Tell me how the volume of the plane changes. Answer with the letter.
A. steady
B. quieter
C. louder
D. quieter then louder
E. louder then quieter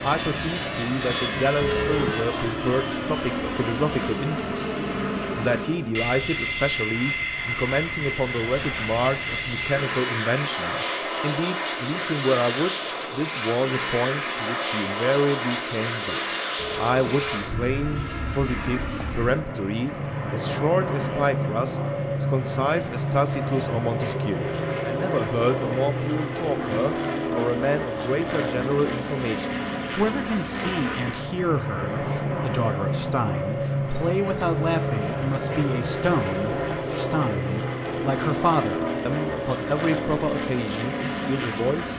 A.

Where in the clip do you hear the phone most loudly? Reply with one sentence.
The loudest moment of the phone is at 2 seconds.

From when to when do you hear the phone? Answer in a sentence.
The phone can be heard from 1.6 to 2.2 s, from 16.6 to 19.2 s and from 34.5 to 36.8 s.